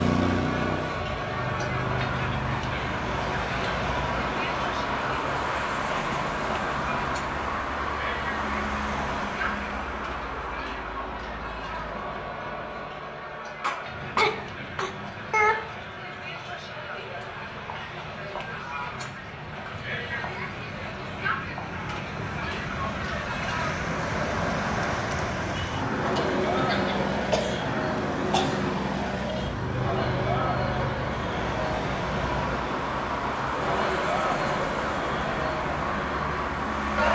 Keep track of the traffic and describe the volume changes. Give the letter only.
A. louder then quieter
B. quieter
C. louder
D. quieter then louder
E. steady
D.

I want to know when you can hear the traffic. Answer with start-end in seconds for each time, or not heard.
0.0-37.1.